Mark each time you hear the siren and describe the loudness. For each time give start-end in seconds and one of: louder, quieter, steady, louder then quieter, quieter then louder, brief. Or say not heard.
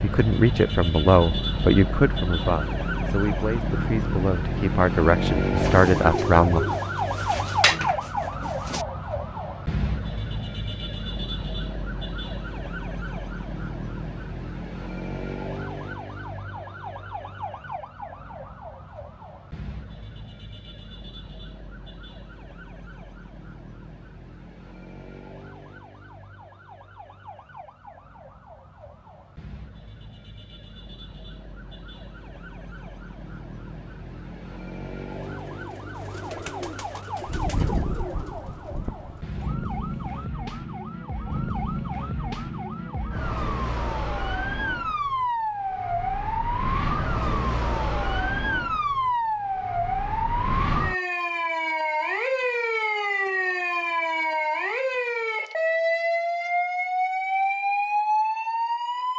0.0-59.1 quieter then louder.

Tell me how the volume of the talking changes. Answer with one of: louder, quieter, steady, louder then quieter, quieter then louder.
quieter then louder.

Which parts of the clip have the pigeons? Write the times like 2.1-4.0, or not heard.
5.5-8.8, 35.2-40.2.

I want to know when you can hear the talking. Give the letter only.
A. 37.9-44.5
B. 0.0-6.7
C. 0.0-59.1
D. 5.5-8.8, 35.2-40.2
B.